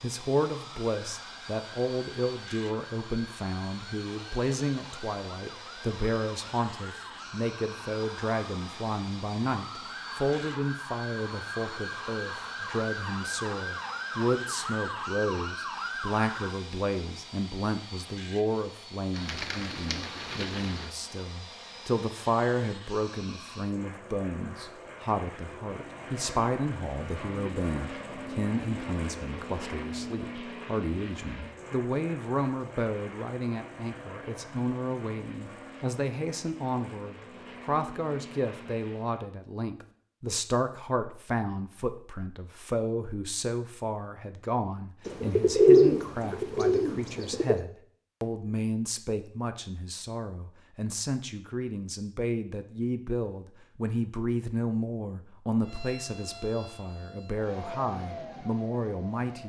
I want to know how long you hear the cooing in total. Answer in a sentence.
You can hear the cooing for 4 seconds altogether.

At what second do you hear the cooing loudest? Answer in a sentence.
The loudest moment of the cooing is at 46 seconds.